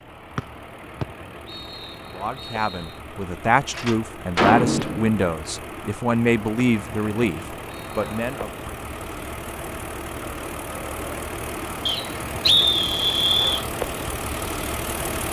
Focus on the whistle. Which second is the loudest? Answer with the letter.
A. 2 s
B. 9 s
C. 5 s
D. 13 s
D.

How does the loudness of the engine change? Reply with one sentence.
The volume of the engine goes up.